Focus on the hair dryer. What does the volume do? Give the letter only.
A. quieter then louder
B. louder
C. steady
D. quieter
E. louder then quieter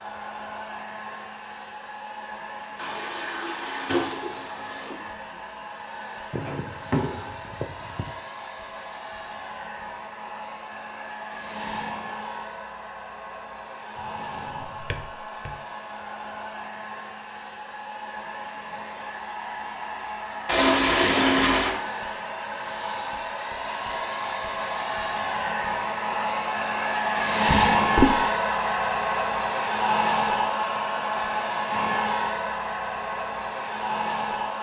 B.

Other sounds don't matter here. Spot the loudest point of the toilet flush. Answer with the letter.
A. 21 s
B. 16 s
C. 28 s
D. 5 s
A.